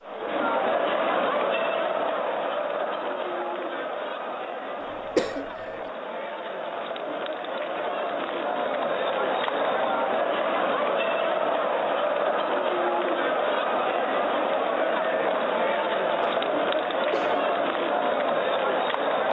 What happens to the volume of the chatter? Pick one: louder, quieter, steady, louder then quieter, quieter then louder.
quieter then louder.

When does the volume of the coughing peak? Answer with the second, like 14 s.
5 s.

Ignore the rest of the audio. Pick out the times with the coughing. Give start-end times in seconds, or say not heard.
4.8-5.9, 16.2-17.5.